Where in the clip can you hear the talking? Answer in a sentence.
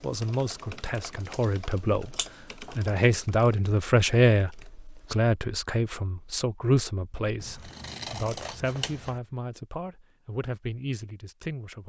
The talking can be heard from 0.0 to 11.8 s.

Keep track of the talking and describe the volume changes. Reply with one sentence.
The loudness of the talking goes up, then down.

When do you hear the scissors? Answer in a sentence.
You can hear the scissors from 2.1 to 2.8 s and from 7.4 to 9.2 s.